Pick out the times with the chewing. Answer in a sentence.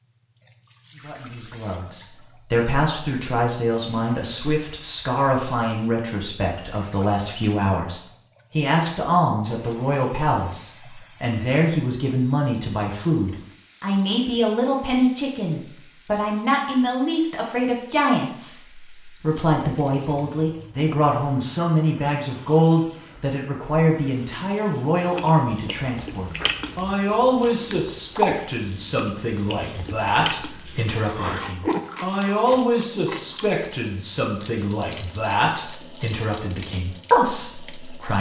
The chewing can be heard from 25.1 to 33.6 s.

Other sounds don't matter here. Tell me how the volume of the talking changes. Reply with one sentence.
The loudness of the talking stays about the same.